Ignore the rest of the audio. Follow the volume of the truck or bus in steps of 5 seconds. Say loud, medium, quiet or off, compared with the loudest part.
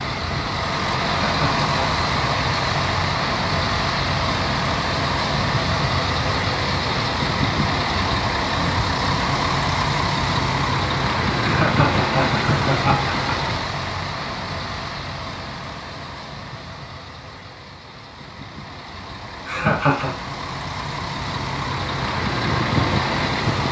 loud, loud, loud, quiet, loud.